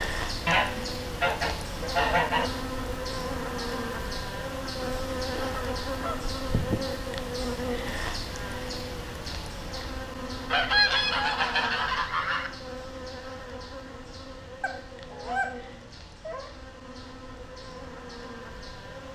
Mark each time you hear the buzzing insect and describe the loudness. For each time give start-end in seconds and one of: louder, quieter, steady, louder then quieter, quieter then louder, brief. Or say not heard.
0.0-19.0 quieter.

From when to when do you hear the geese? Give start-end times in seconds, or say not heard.
0.5-2.5, 4.8-6.8, 10.5-12.5, 14.6-16.5.